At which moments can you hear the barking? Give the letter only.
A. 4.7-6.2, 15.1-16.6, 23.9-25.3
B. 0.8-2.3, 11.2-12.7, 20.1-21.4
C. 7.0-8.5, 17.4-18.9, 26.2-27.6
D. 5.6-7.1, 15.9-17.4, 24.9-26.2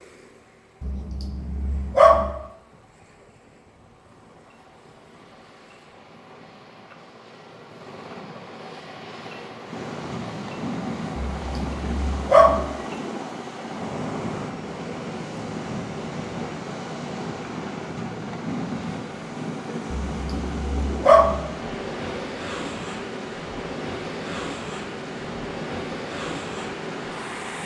B.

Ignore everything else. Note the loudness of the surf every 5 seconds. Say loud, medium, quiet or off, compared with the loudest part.
quiet, quiet, loud, loud, loud, loud.